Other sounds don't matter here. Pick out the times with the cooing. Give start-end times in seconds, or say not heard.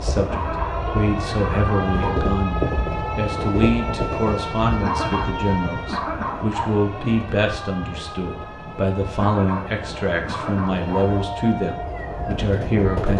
not heard.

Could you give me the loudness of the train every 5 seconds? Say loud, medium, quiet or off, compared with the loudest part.
loud, medium, loud.